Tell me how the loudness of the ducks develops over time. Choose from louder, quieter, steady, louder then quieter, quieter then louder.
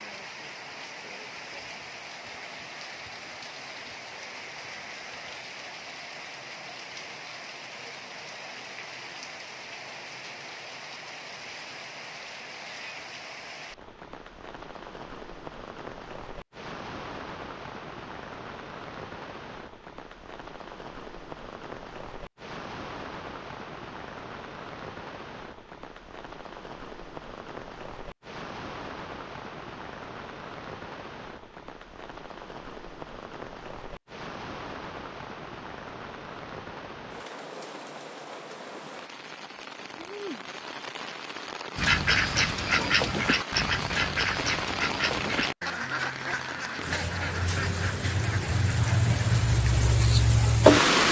quieter.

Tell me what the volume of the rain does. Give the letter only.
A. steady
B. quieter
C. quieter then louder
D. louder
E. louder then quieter
D.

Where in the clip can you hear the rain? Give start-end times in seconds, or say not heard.
0.0-51.0.